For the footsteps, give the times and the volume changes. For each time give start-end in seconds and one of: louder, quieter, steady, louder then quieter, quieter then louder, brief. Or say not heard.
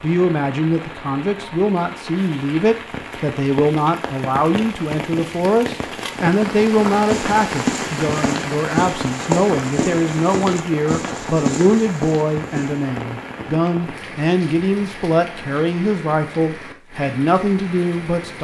6.8-12.8 steady.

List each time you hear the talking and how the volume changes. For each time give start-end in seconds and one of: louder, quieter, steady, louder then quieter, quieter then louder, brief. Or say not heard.
0.0-18.3 steady.